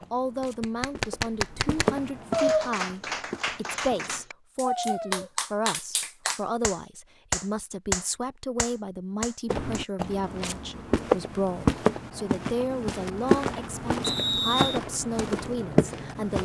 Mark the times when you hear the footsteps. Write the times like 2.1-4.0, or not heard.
0.0-4.2, 9.5-16.4.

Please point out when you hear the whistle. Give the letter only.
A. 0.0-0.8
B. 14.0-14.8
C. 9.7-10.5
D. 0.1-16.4
B.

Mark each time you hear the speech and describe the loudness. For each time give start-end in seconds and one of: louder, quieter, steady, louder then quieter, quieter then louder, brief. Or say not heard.
0.1-16.4 steady.